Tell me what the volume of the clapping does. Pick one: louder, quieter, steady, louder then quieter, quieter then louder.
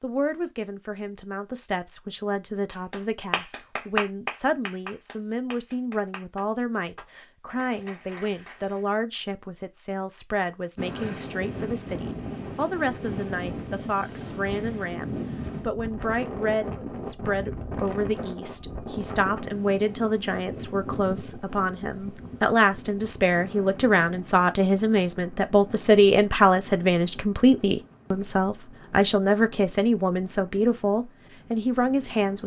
quieter.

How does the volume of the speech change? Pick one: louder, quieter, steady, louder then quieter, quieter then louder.
louder.